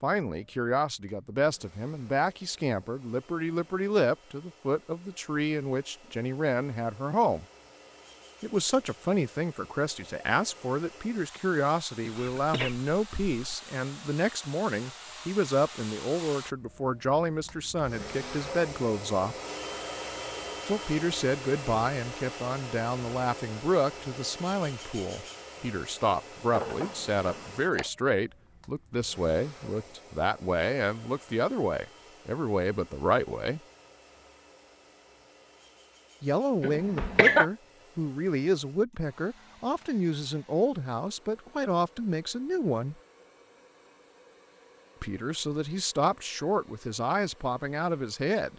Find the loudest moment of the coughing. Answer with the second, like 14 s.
37 s.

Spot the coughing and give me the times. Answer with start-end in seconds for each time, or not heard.
12.0-13.6, 26.5-27.9, 36.6-37.5.